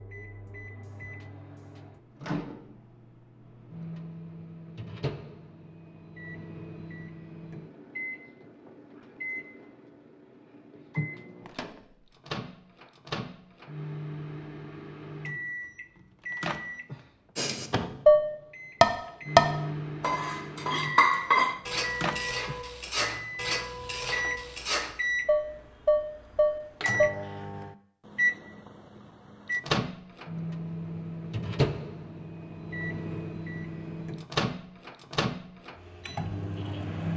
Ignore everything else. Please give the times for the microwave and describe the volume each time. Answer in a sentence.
You can hear the microwave from 0.0 to 37.1 s, getting louder.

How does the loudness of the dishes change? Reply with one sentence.
The loudness of the dishes goes down, then up.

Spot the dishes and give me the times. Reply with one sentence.
The dishes can be heard from 17.4 to 27.1 s.